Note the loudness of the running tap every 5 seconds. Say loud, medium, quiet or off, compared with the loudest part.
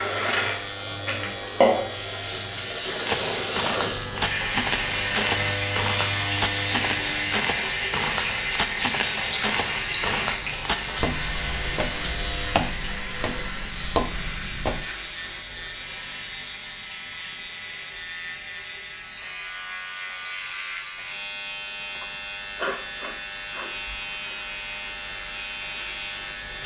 loud, loud, medium, quiet, quiet, quiet.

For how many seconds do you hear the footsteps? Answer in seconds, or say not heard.
12 s.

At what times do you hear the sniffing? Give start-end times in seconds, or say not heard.
21.9-23.9.